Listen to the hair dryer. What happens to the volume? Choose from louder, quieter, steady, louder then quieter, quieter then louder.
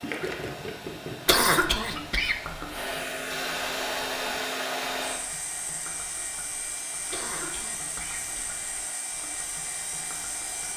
louder then quieter.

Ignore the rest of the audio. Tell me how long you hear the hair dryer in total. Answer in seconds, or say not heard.
11 s.